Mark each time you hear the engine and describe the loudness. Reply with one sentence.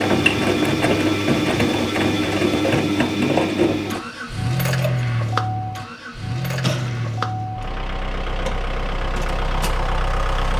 The engine can be heard from 0.0 to 10.5 s, getting quieter.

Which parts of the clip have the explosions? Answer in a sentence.
You can hear the explosions from 6.6 to 7.5 s.